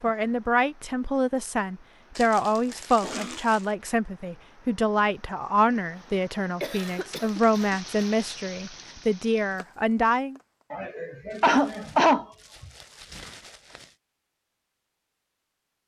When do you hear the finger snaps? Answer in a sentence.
You can't hear the finger snaps here.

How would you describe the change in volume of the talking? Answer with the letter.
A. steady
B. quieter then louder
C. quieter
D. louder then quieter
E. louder
A.